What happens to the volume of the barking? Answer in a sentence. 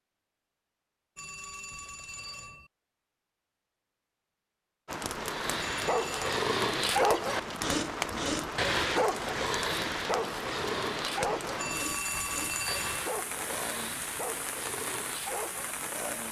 The loudness of the barking goes down.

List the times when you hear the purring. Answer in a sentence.
The purring can't be heard in this clip.